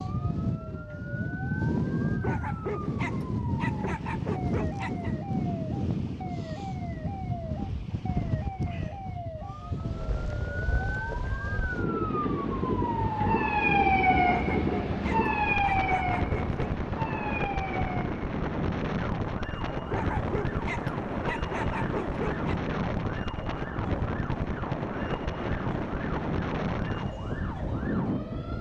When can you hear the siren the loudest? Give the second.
14 s.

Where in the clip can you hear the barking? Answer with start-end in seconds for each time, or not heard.
2.2-5.2, 14.3-16.8, 19.9-22.6.